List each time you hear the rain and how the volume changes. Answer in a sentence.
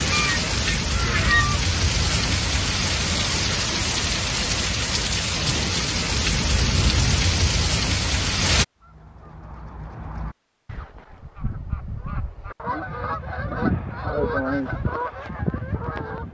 The rain can be heard from 0.0 to 8.7 s, at a steady volume.